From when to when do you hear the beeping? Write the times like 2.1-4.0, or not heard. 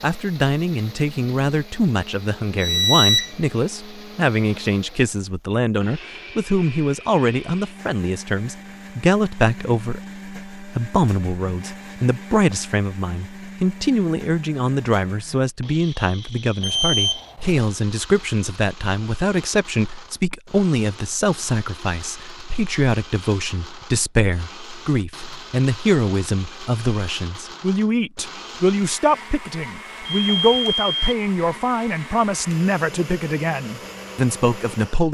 2.5-3.3, 16.6-17.6, 30.1-30.9.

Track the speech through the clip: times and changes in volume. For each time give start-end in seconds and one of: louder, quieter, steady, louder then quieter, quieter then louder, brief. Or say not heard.
0.0-35.1 steady.